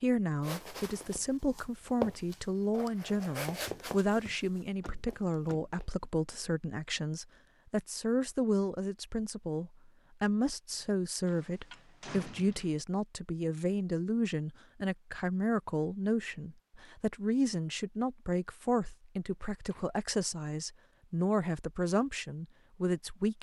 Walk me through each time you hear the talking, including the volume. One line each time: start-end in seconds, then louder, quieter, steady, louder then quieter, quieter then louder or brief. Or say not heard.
0.0-23.3 steady.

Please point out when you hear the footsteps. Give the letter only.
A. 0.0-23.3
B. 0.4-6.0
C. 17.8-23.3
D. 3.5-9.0
B.